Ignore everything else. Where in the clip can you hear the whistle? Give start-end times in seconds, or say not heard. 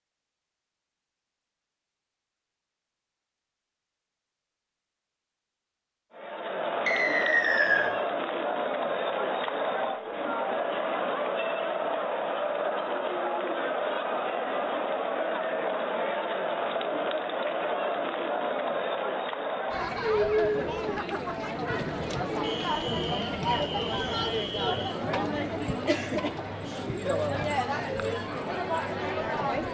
6.8-7.9, 22.4-24.9.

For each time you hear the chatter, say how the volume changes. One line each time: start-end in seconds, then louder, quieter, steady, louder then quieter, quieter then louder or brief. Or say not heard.
6.1-29.6 steady.